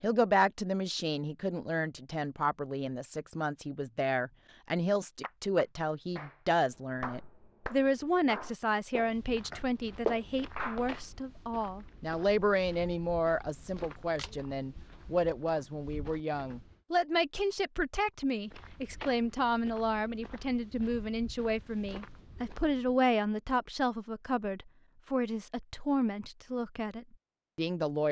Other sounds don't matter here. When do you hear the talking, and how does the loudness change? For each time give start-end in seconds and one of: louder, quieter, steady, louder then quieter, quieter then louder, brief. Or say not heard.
0.0-28.0 steady.